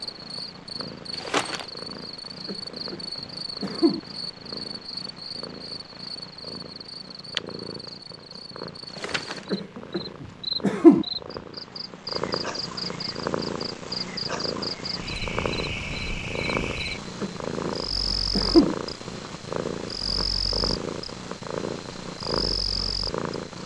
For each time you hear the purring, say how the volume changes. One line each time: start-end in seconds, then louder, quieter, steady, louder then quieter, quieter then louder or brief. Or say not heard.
0.0-23.6 louder.